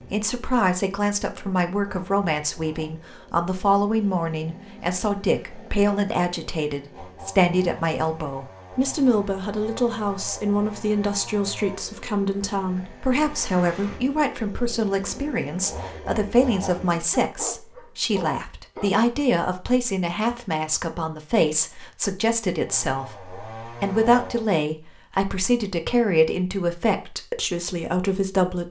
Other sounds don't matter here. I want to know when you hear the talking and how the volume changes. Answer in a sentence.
You can hear the talking from 0.1 to 28.6 s, at a steady volume.